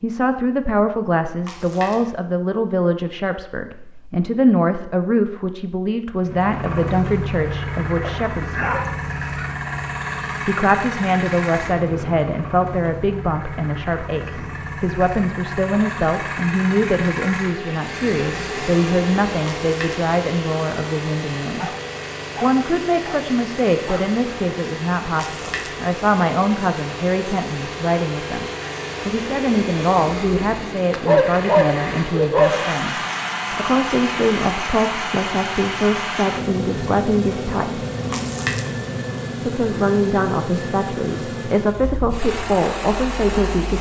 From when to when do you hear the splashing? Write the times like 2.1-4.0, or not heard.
1.4-2.1, 19.4-20.1, 25.1-25.9, 38.1-38.8.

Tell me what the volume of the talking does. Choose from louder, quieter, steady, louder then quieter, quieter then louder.
steady.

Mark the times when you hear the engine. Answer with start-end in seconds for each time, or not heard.
6.2-43.7.